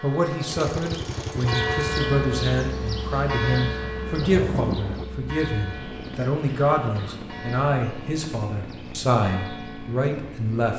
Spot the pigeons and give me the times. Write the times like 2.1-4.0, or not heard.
not heard.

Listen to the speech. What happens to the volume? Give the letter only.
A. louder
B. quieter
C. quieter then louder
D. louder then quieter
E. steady
E.